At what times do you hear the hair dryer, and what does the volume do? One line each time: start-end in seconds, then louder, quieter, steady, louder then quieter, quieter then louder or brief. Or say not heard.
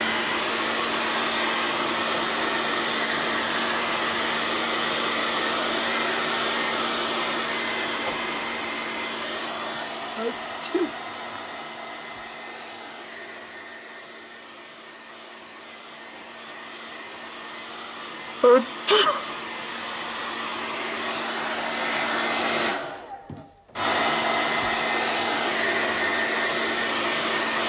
0.0-27.6 quieter then louder.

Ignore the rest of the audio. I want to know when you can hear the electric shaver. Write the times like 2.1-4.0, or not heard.
not heard.